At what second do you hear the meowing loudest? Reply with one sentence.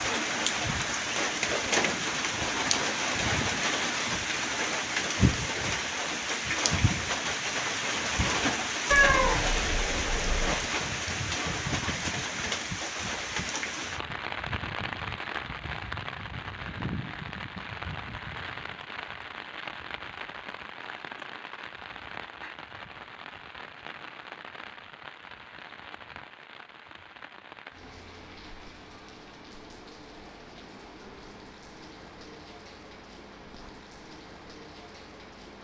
The volume of the meowing peaks at 9 seconds.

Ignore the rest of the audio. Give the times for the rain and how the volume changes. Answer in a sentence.
You can hear the rain from 0.0 to 35.6 s, getting quieter.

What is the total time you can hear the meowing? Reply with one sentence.
You can hear the meowing for 2 seconds altogether.